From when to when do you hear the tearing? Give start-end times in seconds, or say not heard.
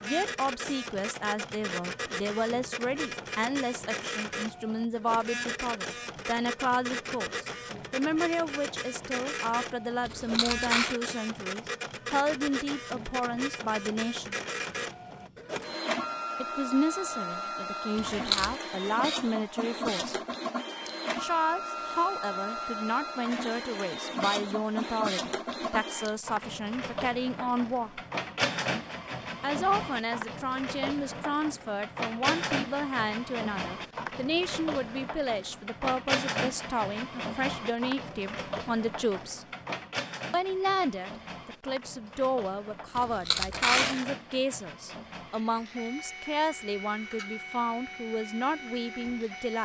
10.1-10.9, 17.9-18.6, 43.0-44.0.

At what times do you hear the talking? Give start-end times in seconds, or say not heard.
0.0-14.3, 16.4-20.2, 21.1-28.0, 29.4-39.5, 40.3-49.5.